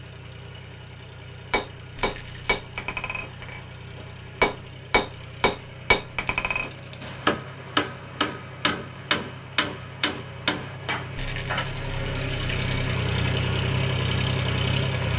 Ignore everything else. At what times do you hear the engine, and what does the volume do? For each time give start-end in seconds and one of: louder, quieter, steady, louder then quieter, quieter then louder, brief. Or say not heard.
0.0-15.1 louder.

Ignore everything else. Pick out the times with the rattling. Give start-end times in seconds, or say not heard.
1.9-2.6, 6.2-7.2, 11.2-12.9.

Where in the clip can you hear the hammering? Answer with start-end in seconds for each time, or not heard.
1.5-11.7.